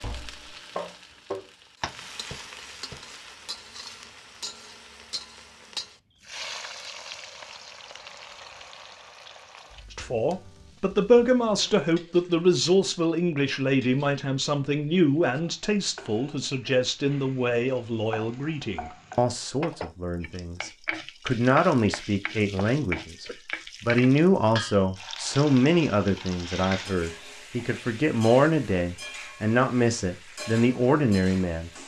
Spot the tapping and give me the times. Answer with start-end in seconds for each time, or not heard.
0.0-3.1.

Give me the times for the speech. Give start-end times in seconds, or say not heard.
9.9-31.7.